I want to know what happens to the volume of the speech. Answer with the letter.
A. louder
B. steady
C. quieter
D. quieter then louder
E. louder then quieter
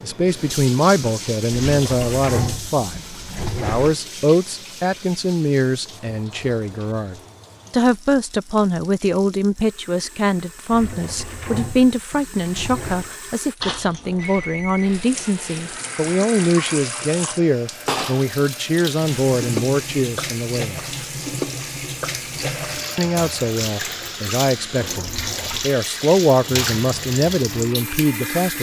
B.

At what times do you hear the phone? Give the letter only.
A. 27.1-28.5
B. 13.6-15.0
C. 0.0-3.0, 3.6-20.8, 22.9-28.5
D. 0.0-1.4
B.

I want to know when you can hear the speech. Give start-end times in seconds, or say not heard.
0.0-3.0, 3.6-20.8, 22.9-28.5.